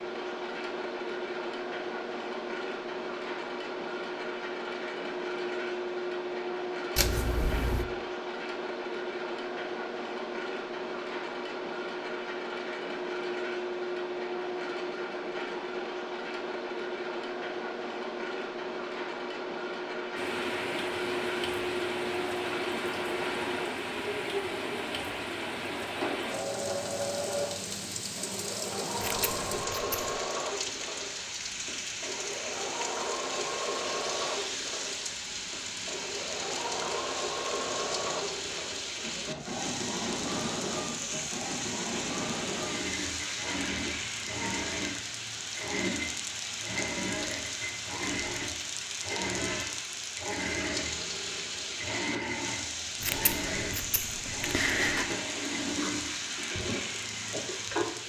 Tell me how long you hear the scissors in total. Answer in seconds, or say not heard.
4 s.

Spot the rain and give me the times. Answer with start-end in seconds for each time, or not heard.
20.1-58.0.